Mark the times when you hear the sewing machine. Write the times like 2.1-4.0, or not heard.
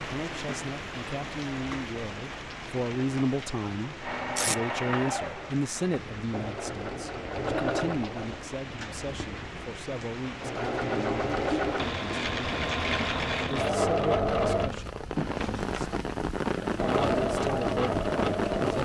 4.0-18.8.